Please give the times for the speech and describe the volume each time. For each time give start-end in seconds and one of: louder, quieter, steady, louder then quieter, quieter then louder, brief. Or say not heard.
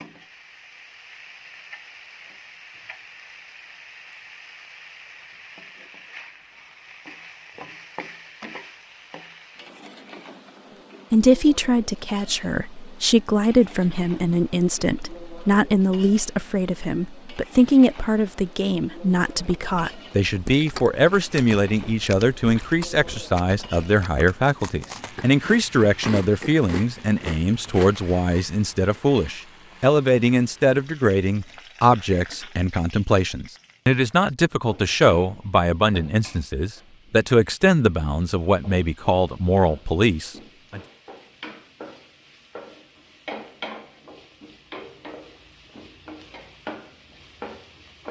11.1-40.8 steady.